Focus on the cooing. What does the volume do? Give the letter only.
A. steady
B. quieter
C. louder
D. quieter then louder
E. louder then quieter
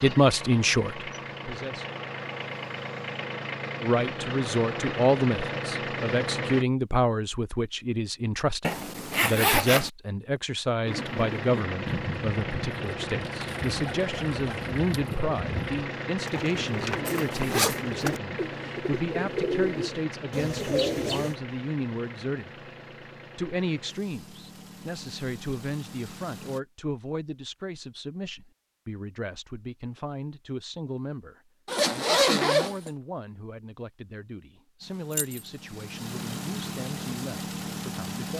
C.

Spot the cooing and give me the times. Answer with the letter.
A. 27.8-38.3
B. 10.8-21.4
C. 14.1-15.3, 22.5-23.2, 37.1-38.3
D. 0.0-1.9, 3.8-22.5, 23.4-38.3
B.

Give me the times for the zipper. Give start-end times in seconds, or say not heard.
8.6-9.9, 17.1-17.8, 31.6-32.9.